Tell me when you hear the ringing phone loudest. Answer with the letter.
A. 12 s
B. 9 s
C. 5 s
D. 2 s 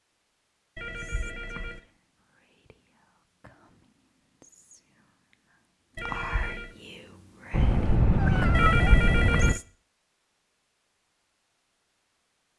B.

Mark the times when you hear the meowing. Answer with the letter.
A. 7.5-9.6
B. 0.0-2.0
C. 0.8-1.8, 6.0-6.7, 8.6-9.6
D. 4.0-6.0
A.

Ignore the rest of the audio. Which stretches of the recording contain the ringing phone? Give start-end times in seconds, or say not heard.
0.8-1.8, 6.0-6.7, 8.6-9.6.